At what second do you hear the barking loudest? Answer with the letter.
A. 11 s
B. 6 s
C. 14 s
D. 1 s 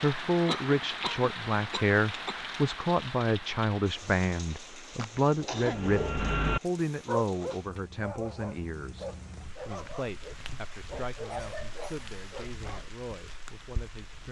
B.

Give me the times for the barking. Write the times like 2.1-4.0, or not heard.
5.4-12.9.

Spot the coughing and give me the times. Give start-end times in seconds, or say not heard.
0.5-2.4, 5.0-5.8, 11.3-12.2.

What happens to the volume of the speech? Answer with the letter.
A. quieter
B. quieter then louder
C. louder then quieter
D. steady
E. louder
A.